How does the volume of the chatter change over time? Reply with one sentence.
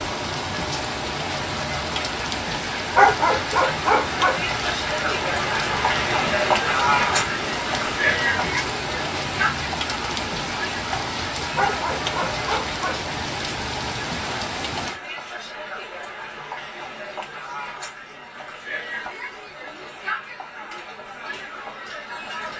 The loudness of the chatter goes up, then down.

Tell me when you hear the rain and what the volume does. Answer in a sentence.
The rain can be heard from 0.0 to 15.0 s, at a steady volume.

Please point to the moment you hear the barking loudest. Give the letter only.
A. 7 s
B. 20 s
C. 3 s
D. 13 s
C.